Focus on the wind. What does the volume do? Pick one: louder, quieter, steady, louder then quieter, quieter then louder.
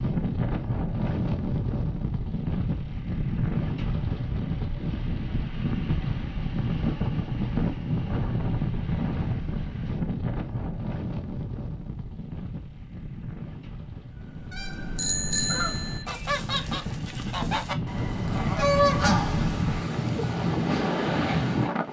quieter then louder.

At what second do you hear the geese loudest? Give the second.
19 s.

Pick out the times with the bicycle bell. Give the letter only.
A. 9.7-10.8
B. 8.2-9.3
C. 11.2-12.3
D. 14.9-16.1
D.